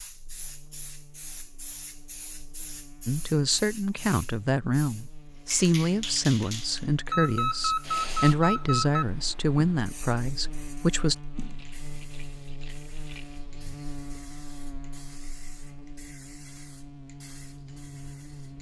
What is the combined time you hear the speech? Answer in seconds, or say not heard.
8 s.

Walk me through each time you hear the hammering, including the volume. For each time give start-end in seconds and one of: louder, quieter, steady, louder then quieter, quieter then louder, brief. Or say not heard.
not heard.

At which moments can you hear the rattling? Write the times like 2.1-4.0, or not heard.
11.4-13.4.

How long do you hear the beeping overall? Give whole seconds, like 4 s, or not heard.
2 s.